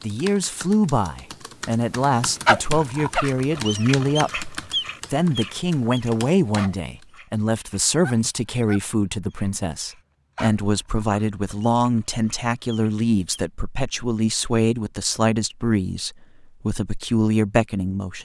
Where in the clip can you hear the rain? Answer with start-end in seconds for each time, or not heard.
not heard.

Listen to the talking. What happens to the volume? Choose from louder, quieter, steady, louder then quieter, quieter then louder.
steady.